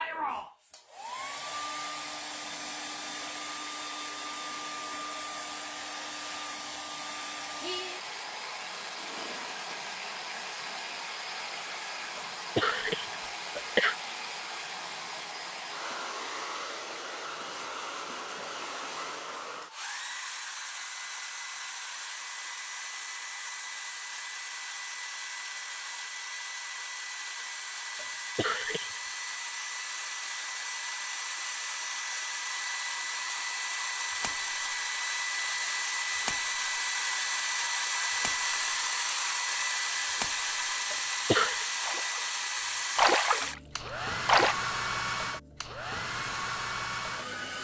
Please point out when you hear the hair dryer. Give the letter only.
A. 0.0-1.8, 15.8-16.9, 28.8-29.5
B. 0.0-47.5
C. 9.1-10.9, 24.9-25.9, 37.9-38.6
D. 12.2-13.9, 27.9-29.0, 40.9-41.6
B.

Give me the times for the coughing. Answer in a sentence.
You can hear the coughing from 12.2 to 13.9 s, from 27.9 to 29.0 s and from 40.9 to 41.6 s.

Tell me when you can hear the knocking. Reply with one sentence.
You can't hear the knocking here.